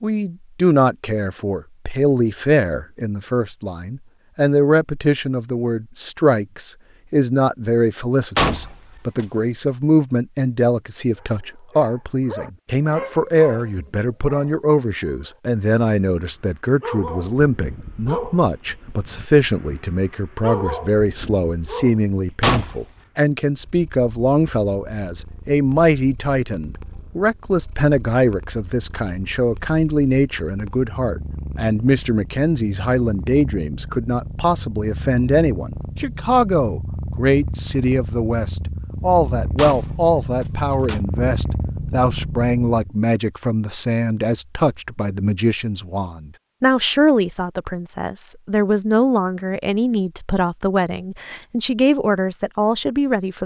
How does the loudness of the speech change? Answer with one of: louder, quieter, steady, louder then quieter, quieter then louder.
steady.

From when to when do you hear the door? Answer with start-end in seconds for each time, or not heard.
8.3-9.2, 22.4-22.8, 39.5-41.0.